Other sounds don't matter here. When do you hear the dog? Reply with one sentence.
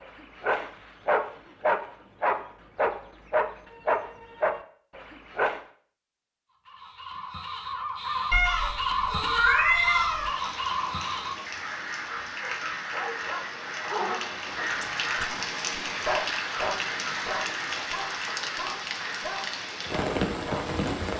You can hear the dog from 0.0 to 5.6 s and from 12.4 to 20.8 s.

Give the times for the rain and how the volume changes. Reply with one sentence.
You can hear the rain from 9.9 to 21.1 s, getting louder.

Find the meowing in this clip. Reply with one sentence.
You can hear the meowing from 8.3 to 10.3 s.